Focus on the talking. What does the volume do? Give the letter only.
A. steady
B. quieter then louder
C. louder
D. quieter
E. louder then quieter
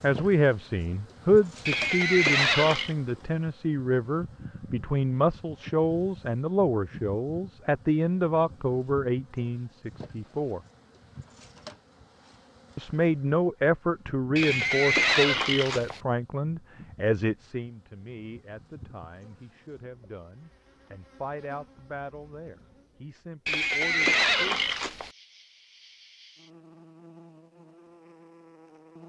D.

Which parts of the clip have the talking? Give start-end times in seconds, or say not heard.
0.0-10.6, 12.8-24.6.